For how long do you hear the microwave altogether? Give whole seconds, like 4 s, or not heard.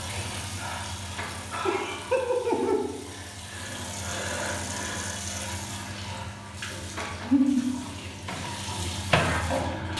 2 s.